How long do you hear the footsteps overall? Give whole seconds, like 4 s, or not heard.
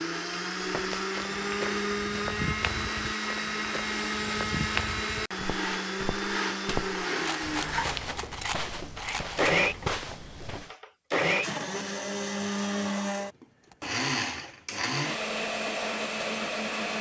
10 s.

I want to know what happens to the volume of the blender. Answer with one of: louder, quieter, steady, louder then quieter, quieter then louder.
steady.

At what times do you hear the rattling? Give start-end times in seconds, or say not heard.
7.2-9.6.